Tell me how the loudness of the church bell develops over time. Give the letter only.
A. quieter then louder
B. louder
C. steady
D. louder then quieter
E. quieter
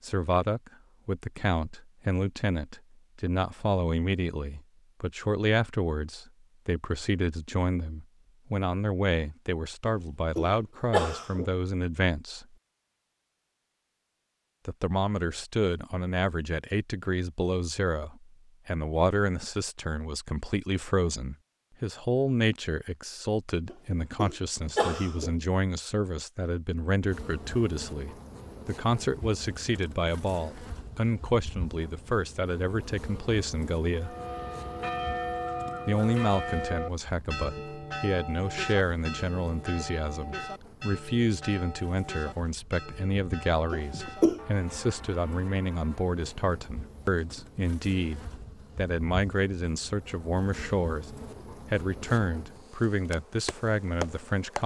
E.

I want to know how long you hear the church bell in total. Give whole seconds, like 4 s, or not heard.
12 s.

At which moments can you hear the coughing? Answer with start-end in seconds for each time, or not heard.
9.8-11.5, 23.6-25.4, 43.7-44.4.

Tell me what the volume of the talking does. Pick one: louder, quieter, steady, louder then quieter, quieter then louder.
steady.